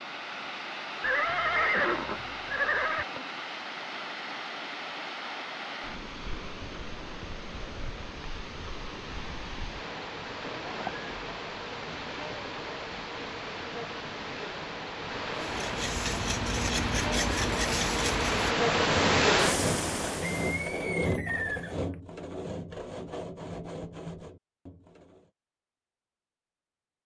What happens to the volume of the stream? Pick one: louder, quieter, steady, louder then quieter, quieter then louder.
louder.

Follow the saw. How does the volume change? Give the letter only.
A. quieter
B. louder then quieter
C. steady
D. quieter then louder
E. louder
A.